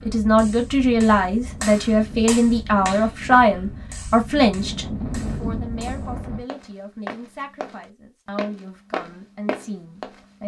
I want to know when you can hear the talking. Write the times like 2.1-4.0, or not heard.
0.0-10.4.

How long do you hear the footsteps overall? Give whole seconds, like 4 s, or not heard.
4 s.